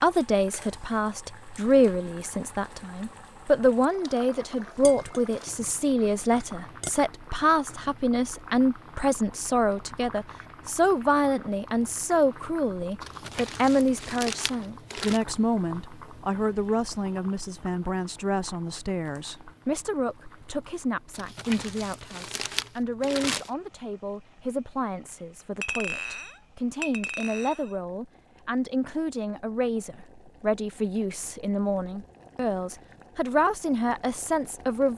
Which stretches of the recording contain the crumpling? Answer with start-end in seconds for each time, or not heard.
13.0-15.2, 21.1-23.5.